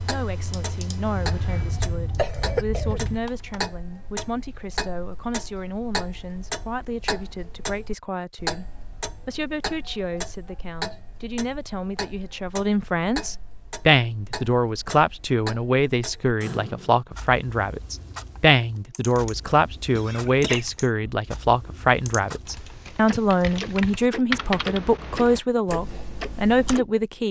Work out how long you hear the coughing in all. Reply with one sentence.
The coughing can be heard for 3 seconds in total.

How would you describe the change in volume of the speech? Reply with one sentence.
The volume of the speech goes up.